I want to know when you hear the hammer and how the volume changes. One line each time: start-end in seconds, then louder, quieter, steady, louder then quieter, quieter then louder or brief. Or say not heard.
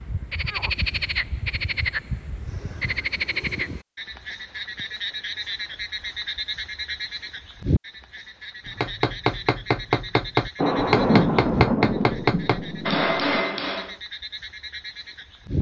8.7-13.9 steady.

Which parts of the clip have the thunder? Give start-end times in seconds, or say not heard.
10.6-13.4.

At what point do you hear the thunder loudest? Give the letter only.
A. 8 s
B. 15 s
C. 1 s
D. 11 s
D.